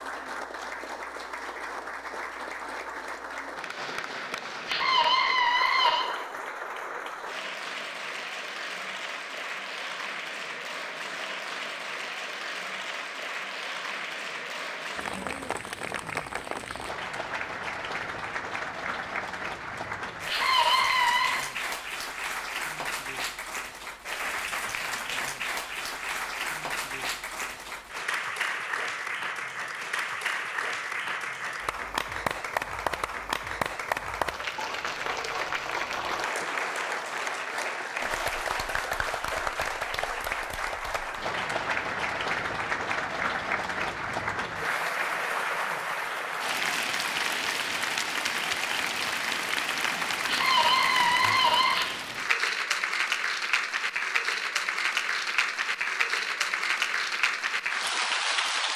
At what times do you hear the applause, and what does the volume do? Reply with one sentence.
The applause can be heard from 0.0 to 58.7 s, getting louder.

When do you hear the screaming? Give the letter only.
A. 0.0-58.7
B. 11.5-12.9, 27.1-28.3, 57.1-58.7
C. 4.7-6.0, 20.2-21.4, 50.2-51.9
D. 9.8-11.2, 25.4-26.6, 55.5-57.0
C.